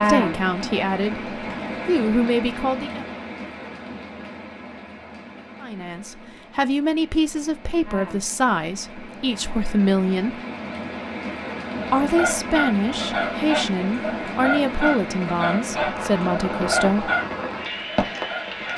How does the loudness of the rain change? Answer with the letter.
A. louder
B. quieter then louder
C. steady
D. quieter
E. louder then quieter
B.